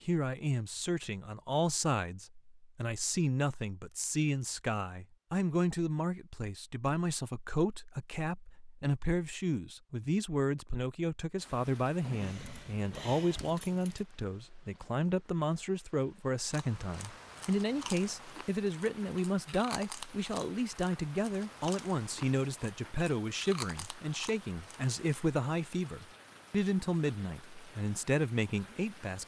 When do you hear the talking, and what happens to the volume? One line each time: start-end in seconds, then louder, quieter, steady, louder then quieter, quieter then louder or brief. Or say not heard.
0.1-29.2 steady.